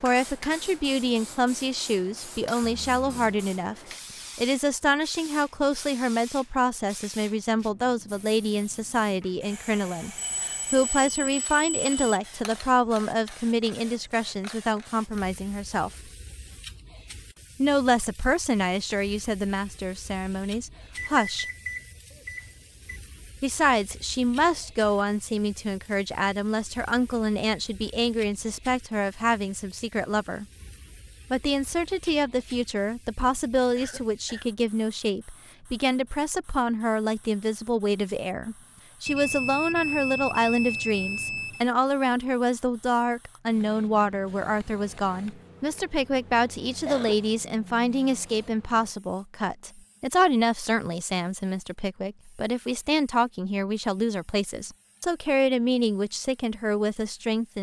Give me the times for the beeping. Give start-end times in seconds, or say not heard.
10.2-12.2, 20.9-23.0, 39.0-41.6.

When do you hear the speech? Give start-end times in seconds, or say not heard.
0.0-16.1, 17.6-21.4, 23.4-30.4, 31.3-57.5.